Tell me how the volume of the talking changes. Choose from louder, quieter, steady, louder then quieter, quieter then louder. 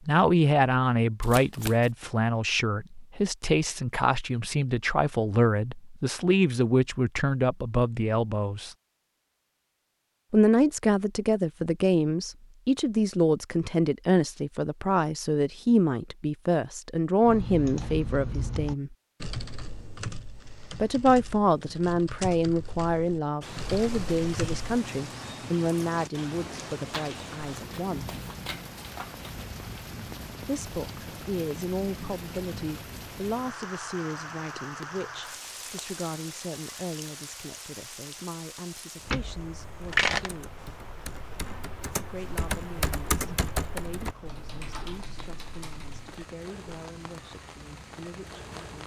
quieter.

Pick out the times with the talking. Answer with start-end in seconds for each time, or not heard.
0.1-8.8, 10.3-18.9, 20.8-28.1, 30.4-40.5, 42.0-48.8.